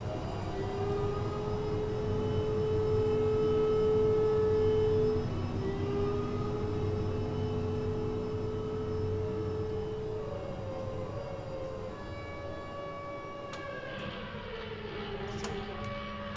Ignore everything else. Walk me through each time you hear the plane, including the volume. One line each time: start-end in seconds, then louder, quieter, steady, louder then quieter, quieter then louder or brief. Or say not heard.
0.0-16.3 quieter.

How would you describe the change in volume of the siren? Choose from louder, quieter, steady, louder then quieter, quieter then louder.
quieter.